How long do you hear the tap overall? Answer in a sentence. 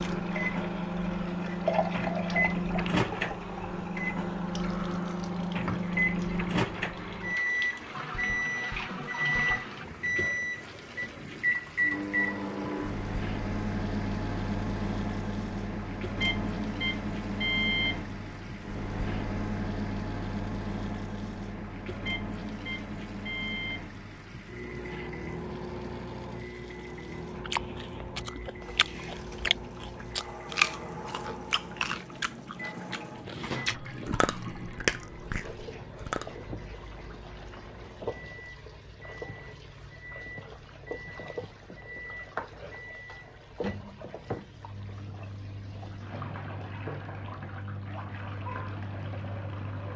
You can hear the tap for 50 seconds altogether.